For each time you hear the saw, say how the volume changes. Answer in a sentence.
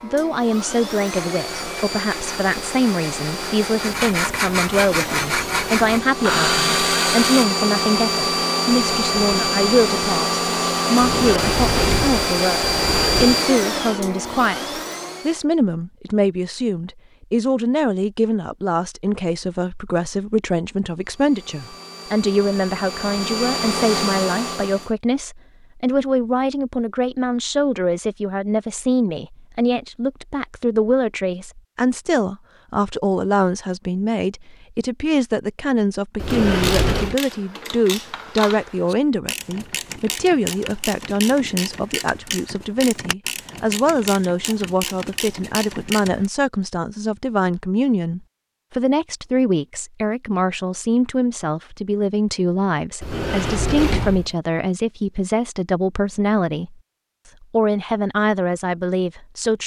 You can hear the saw from 1.1 to 7.5 s, getting louder.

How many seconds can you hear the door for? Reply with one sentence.
The door can be heard for 5 seconds in total.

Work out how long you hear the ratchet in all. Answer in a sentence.
The ratchet can be heard for 10 seconds in total.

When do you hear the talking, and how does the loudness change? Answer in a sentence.
The talking can be heard from 0.0 to 56.8 s, at a steady volume; and briefly from 57.4 to 59.6 s.